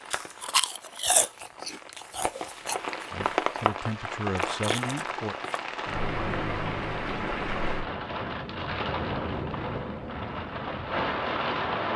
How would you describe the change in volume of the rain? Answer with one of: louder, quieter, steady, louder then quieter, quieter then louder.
louder.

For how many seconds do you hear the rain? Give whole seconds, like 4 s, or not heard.
12 s.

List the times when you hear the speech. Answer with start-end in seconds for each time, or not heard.
3.1-5.3.